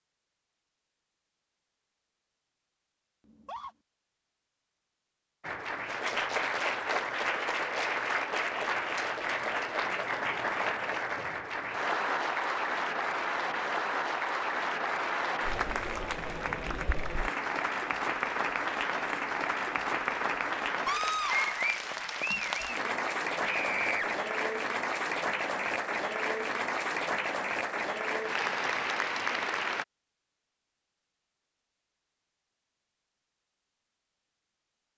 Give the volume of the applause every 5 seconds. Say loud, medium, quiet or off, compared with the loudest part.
off, loud, loud, loud, loud, loud, off.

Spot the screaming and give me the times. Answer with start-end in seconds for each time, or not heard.
3.2-3.8, 20.9-21.7, 23.4-24.1.